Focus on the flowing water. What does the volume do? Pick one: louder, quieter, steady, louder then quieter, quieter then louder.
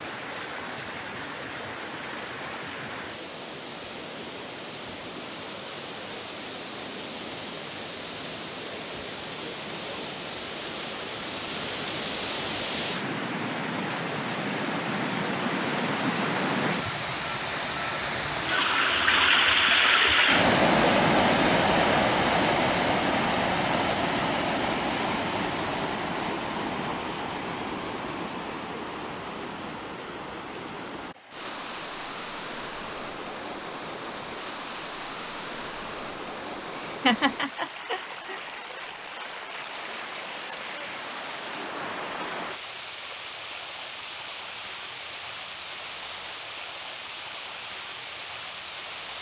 louder then quieter.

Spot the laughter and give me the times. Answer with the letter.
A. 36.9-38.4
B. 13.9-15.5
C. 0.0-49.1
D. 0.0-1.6
A.